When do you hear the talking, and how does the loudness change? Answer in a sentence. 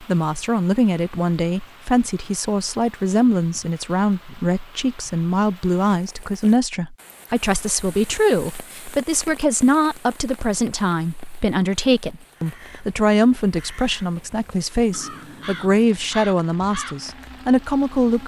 The talking can be heard from 0.0 to 18.2 s, at a steady volume.